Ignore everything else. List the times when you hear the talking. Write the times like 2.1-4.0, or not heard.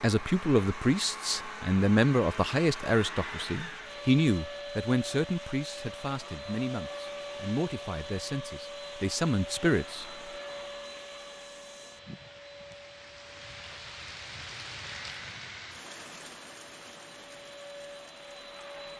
0.0-10.1.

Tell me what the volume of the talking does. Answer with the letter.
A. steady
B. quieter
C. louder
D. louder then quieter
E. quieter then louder
B.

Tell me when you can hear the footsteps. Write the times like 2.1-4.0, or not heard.
not heard.